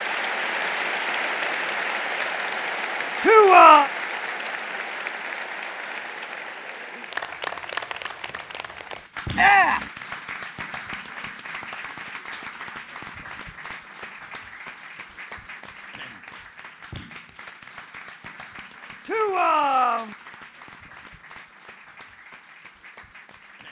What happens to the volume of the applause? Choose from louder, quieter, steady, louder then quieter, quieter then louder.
quieter.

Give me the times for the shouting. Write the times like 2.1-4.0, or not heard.
3.2-3.9, 9.3-9.9, 19.1-20.1.